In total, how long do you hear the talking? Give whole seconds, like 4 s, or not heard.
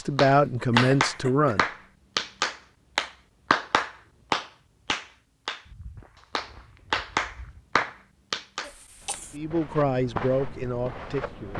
4 s.